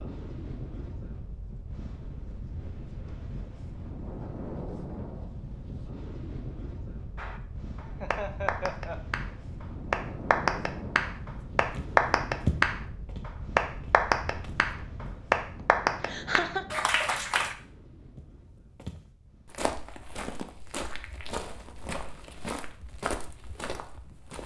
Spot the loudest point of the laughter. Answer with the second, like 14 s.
16 s.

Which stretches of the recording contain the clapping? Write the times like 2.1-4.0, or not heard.
7.2-17.6.